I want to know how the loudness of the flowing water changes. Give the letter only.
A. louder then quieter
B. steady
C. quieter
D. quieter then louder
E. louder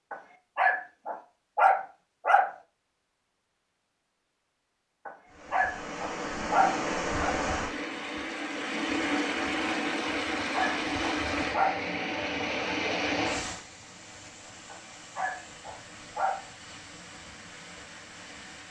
C.